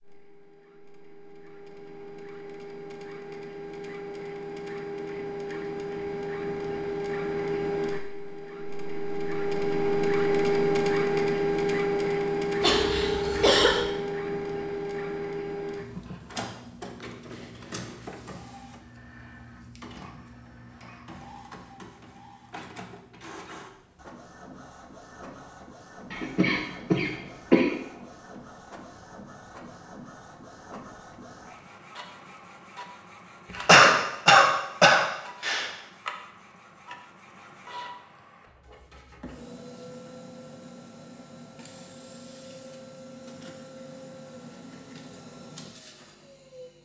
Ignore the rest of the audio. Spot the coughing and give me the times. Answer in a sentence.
You can hear the coughing from 12.6 to 13.8 s, from 26.1 to 27.7 s and from 33.5 to 35.7 s.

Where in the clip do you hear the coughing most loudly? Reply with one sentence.
The loudest moment of the coughing is at 34 seconds.